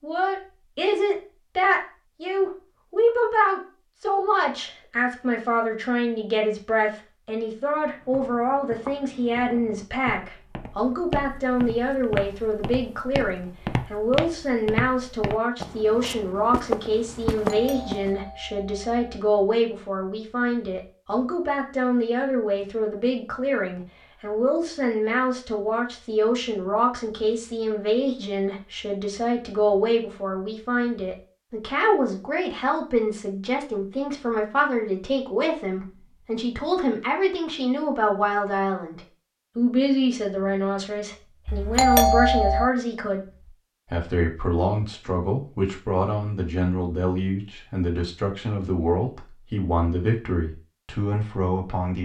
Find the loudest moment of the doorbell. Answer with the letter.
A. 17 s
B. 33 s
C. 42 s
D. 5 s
C.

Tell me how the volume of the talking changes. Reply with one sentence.
The volume of the talking stays about the same.